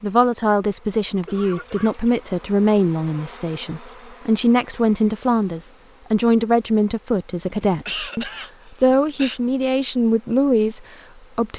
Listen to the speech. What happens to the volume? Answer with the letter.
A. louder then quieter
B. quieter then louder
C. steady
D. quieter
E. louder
C.